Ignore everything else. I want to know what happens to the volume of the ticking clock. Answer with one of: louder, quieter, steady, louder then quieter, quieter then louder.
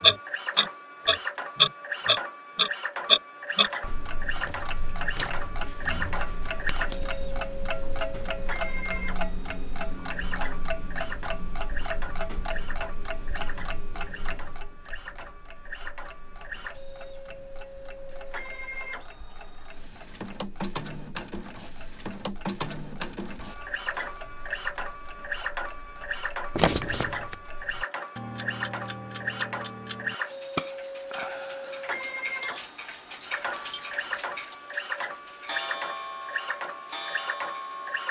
quieter then louder.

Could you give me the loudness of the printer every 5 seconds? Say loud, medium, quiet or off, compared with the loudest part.
loud, loud, medium, medium, loud, loud, loud, loud.